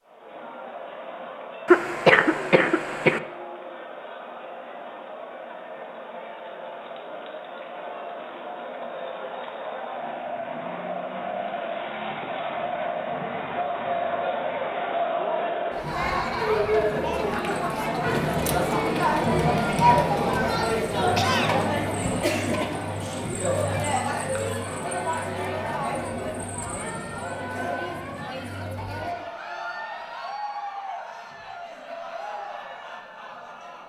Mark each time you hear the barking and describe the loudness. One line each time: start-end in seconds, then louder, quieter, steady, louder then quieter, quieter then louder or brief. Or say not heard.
not heard.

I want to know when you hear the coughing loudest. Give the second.
2 s.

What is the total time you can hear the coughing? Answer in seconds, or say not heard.
2 s.